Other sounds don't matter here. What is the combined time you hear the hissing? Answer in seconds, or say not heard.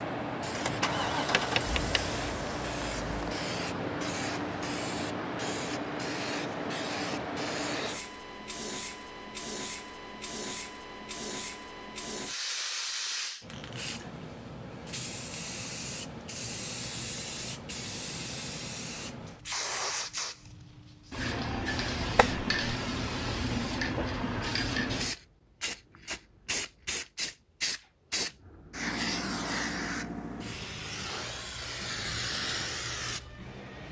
34 s.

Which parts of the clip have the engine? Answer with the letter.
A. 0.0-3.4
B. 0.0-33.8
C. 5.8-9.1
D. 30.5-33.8
A.